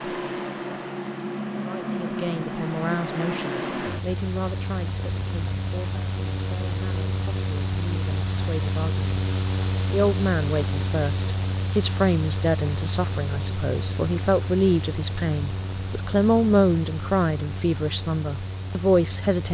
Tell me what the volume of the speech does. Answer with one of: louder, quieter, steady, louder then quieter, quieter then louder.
quieter then louder.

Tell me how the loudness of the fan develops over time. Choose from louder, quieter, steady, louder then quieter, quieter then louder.
quieter.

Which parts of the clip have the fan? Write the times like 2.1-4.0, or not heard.
0.0-19.4.